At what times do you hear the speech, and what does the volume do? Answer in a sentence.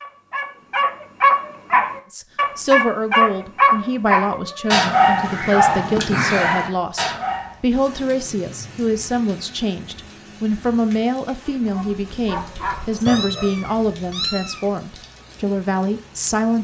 The speech can be heard from 2.1 to 16.5 s, at a steady volume.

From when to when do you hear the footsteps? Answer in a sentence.
You can't hear the footsteps here.